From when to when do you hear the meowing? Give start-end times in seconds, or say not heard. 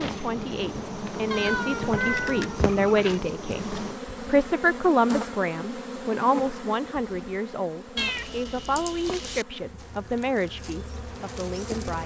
1.3-3.2, 8.0-9.4.